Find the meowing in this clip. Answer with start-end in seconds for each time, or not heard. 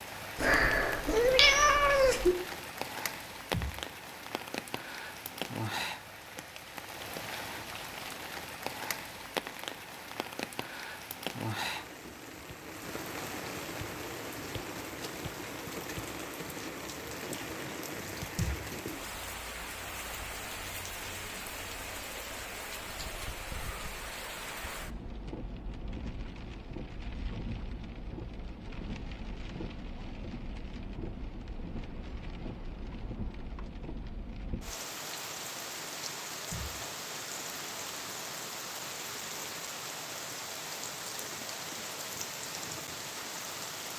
0.3-2.4.